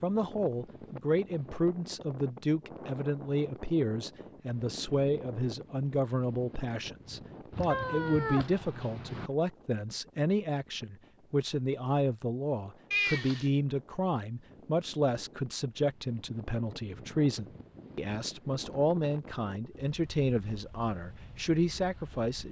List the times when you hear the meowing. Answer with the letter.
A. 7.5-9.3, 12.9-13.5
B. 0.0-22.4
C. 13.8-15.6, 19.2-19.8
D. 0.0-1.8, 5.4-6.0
A.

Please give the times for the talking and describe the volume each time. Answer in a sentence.
The talking can be heard from 0.0 to 22.4 s, at a steady volume.